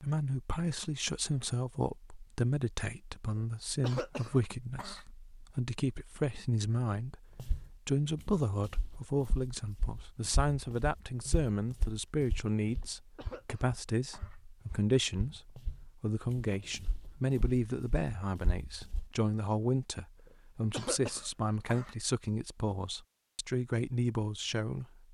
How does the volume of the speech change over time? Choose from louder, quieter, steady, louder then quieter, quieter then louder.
steady.